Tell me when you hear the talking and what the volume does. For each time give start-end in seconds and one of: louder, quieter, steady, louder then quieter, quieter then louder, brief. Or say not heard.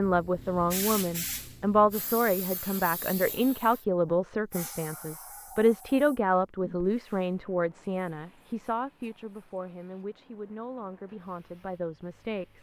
0.0-12.5 quieter.